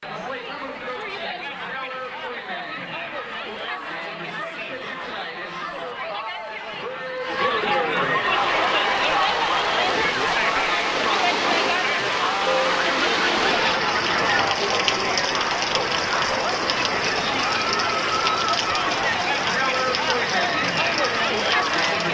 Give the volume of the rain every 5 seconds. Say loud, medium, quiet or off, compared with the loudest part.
off, loud, loud, loud, loud.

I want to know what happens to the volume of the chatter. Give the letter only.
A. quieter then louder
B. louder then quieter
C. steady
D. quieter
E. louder
E.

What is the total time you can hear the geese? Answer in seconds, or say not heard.
2 s.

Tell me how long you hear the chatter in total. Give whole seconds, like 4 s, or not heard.
22 s.